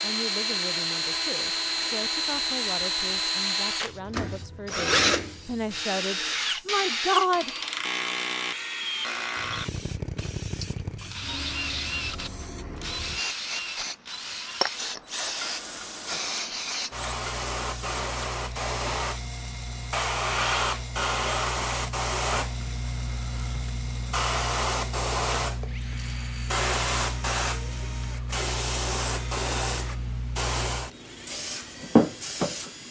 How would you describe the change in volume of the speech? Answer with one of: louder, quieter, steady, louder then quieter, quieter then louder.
louder.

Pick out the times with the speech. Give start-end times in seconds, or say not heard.
0.0-7.5.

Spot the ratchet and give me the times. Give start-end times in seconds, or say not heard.
not heard.